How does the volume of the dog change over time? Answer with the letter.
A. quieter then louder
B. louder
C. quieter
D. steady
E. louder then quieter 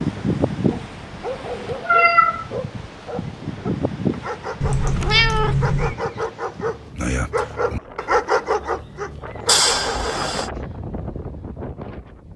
B.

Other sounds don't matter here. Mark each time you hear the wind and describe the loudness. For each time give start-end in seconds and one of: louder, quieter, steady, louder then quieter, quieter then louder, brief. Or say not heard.
0.0-12.3 quieter then louder.